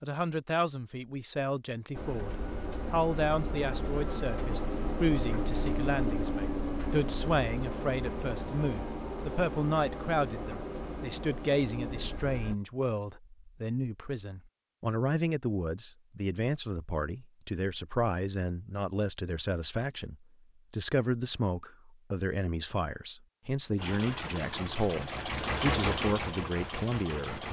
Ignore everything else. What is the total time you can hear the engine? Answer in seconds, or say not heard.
14 s.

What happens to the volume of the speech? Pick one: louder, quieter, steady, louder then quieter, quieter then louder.
steady.